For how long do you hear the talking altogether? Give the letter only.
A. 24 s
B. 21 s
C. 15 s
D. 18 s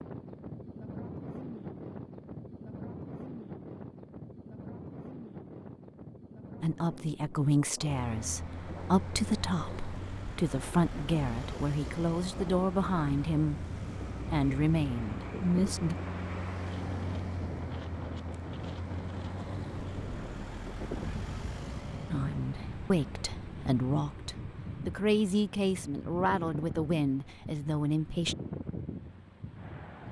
C.